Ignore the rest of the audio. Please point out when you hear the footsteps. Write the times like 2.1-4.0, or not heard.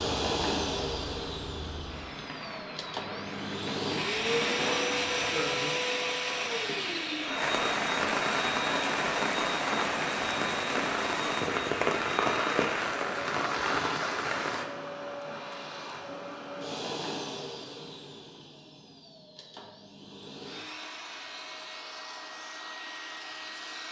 not heard.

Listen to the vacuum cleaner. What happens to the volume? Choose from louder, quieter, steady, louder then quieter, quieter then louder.
quieter.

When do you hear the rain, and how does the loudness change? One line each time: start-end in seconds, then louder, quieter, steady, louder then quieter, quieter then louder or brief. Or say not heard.
0.0-14.7 louder.